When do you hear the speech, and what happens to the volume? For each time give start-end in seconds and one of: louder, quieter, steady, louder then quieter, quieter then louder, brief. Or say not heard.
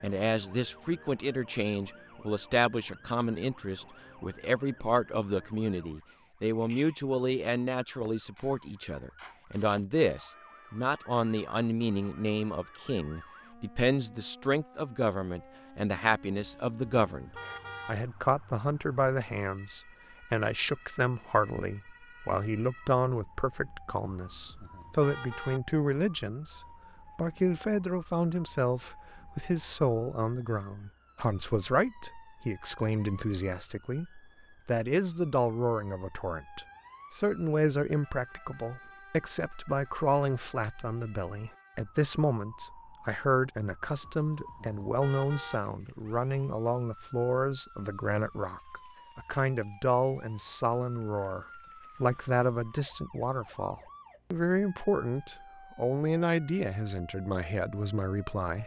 0.0-58.6 steady.